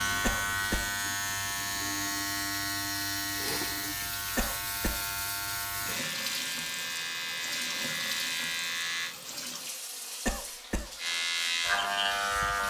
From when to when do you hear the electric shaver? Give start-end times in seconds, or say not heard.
0.0-9.2, 10.9-12.6.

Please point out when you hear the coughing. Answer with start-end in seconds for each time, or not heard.
0.2-0.9, 4.3-5.0, 10.2-10.9.